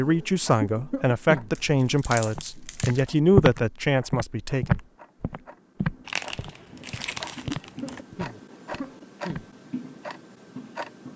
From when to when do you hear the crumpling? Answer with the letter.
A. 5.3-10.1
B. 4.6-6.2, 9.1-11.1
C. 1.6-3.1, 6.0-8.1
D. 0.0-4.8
C.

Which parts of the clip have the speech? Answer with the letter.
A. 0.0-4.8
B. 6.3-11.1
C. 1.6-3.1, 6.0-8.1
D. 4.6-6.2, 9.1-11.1
A.